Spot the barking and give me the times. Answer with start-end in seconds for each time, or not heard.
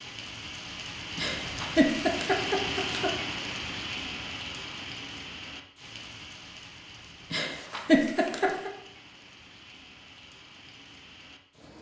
not heard.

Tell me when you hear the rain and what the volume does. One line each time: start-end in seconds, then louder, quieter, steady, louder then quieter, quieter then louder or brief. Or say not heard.
0.0-11.7 quieter.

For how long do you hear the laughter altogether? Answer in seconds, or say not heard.
3 s.